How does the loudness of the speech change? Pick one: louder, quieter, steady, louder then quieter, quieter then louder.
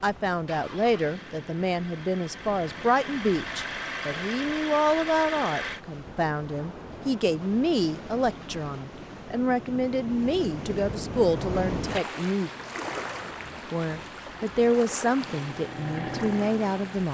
steady.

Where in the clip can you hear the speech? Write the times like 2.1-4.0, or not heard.
0.0-12.5, 13.7-17.0.